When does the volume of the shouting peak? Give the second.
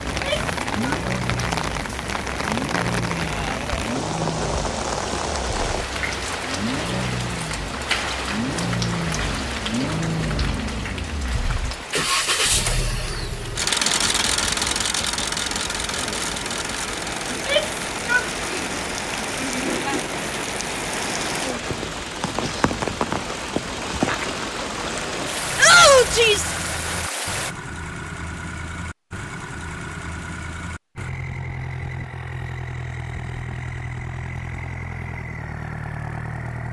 26 s.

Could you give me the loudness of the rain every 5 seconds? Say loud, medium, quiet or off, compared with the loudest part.
loud, loud, medium, loud, loud, loud, off, off.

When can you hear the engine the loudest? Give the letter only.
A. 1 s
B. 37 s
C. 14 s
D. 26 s
C.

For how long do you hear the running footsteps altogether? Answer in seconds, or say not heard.
not heard.